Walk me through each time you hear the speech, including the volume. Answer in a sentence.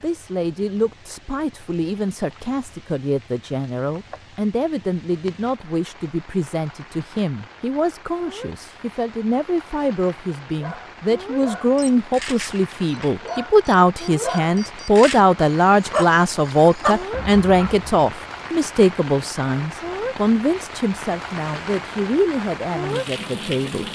You can hear the speech from 0.0 to 23.9 s, getting louder then quieter.